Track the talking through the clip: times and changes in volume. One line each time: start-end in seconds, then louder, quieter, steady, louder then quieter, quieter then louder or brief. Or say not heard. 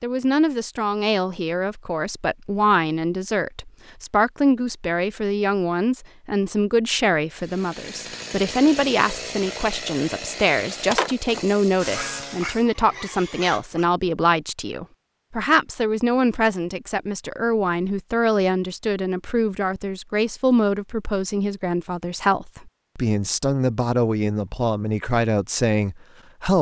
0.0-26.5 steady.